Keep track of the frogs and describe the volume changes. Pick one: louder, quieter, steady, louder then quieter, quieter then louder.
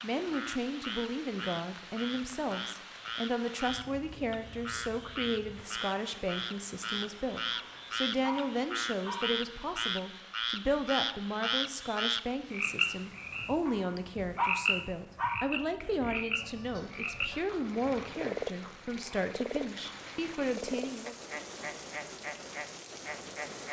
louder then quieter.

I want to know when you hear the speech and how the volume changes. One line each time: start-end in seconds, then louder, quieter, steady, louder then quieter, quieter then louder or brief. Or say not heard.
0.0-21.1 steady.